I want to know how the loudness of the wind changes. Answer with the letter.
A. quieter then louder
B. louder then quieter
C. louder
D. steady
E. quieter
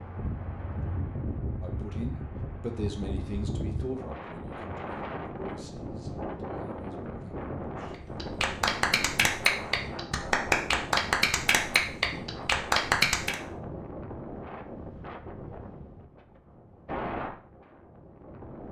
D.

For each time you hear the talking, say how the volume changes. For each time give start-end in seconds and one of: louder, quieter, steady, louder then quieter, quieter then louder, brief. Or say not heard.
1.6-8.0 quieter.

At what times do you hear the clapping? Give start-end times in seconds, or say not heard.
8.2-13.3.